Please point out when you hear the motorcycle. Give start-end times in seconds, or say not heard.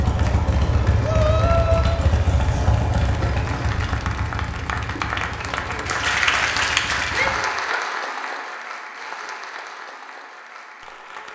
0.0-7.3.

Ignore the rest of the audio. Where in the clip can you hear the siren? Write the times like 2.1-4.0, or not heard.
not heard.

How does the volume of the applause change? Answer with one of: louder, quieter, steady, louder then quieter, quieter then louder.
louder then quieter.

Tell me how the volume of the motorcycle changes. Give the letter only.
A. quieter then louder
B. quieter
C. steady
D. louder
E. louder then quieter
B.